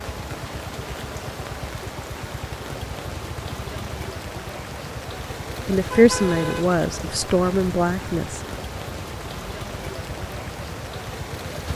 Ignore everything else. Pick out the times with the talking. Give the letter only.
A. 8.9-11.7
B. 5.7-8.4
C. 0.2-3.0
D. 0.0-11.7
B.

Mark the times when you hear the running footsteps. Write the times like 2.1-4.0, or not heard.
not heard.